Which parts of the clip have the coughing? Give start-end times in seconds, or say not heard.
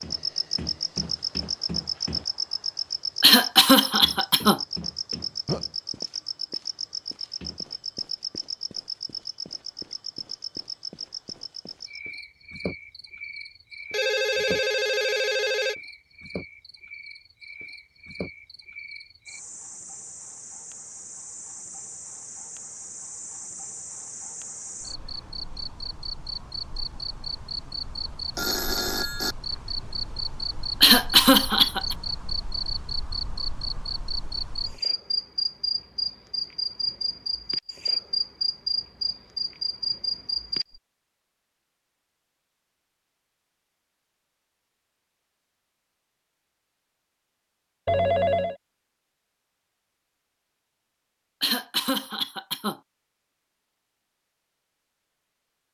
3.2-4.6, 30.8-31.9, 51.4-52.8.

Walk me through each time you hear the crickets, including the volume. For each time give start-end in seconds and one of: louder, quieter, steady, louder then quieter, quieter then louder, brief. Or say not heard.
0.0-40.8 quieter then louder.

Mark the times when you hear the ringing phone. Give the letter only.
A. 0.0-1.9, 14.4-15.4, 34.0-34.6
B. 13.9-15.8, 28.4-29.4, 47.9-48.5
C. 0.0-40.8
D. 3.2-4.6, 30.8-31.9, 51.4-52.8
B.